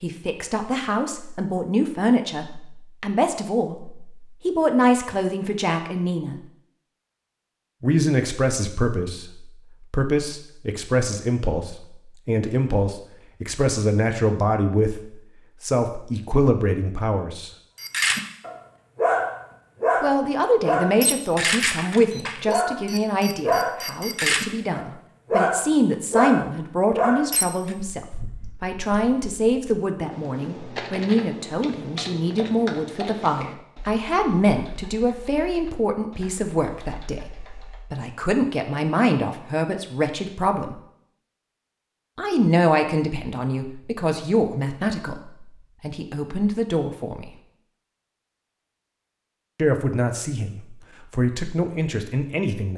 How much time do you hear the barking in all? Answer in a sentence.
The barking can be heard for 10 seconds in total.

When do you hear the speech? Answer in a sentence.
The speech can be heard from 0.0 to 6.3 s, from 7.8 to 17.5 s, from 20.0 to 37.3 s, from 37.9 to 40.8 s, from 42.1 to 47.3 s and from 49.5 to 52.7 s.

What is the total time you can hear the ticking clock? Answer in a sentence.
You can't hear the ticking clock here.